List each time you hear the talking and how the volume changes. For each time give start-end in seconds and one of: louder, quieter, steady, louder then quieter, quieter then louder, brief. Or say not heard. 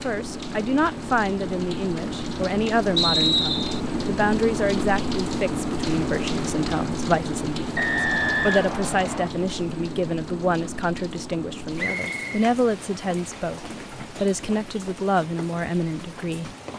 0.0-16.5 steady.